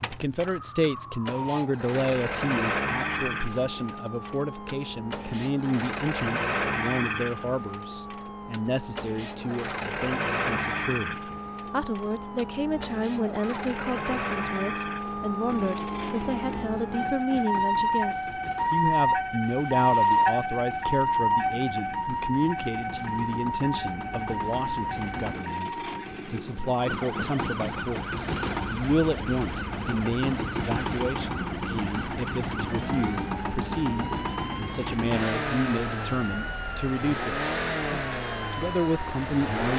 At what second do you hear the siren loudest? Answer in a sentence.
The volume of the siren peaks at 20 seconds.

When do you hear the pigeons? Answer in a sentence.
The pigeons can't be heard in this clip.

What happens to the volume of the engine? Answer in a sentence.
The loudness of the engine goes down, then up.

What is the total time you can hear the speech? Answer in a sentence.
The speech can be heard for 40 seconds in total.